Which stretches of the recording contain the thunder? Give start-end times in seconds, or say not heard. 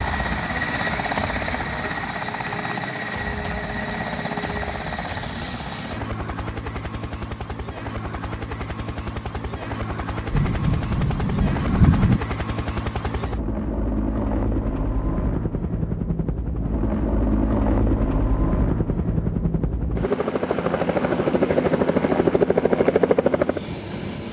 10.3-12.2.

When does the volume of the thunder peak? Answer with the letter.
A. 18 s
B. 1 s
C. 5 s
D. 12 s
D.